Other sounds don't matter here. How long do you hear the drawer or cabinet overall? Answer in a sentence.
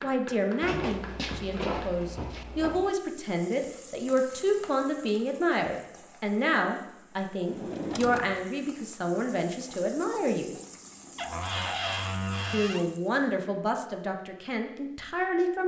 You can hear the drawer or cabinet for 5 seconds altogether.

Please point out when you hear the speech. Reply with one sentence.
You can hear the speech from 0.0 to 10.5 s and from 12.5 to 15.6 s.